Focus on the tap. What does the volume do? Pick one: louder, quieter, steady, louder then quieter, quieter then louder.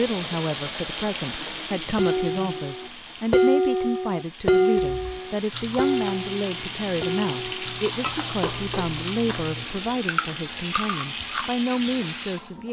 quieter then louder.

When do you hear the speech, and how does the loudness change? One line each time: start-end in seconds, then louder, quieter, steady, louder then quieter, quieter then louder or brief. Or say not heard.
0.0-12.6 steady.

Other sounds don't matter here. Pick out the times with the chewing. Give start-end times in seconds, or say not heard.
4.8-11.6.